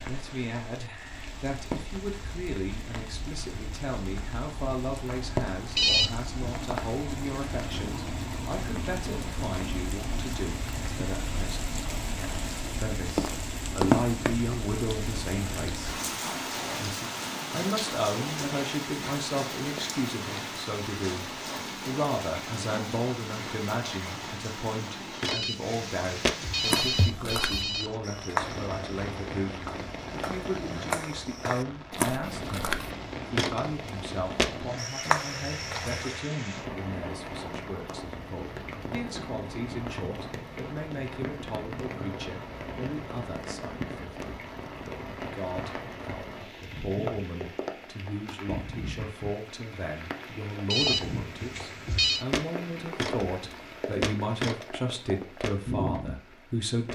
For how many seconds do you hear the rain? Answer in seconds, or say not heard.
57 s.